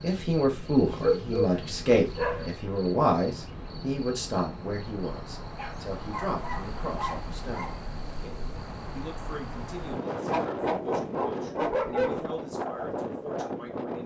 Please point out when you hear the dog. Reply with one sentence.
The dog can be heard from 0.8 to 2.5 s, from 5.5 to 7.8 s and from 10.2 to 12.2 s.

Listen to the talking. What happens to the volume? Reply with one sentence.
The loudness of the talking goes down.